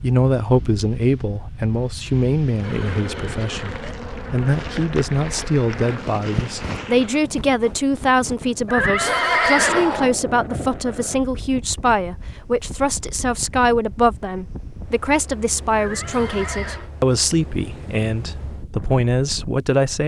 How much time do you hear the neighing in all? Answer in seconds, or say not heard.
4 s.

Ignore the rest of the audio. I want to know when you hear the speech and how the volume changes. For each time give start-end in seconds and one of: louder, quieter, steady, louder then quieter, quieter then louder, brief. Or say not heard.
0.0-20.0 steady.